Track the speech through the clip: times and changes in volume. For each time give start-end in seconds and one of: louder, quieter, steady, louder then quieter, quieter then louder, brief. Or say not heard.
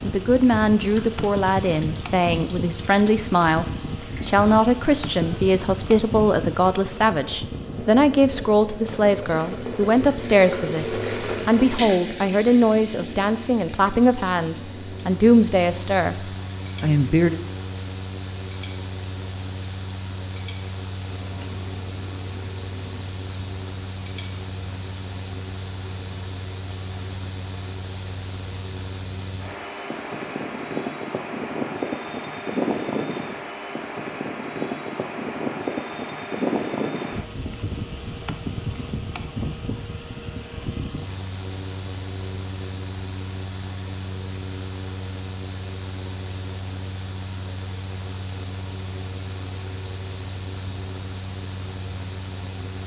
0.0-16.1 steady
16.8-17.4 brief.